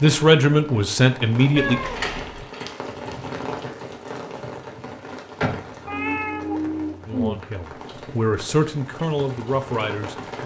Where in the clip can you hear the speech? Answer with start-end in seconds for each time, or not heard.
0.0-1.8, 7.0-10.4.